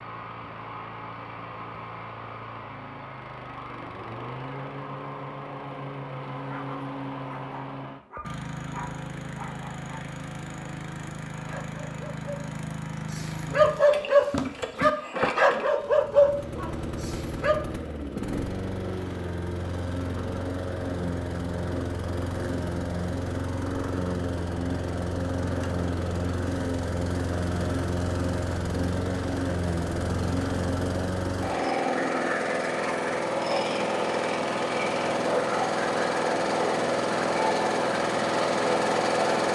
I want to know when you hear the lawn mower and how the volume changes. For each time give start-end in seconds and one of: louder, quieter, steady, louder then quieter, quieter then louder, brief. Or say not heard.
0.0-39.5 louder.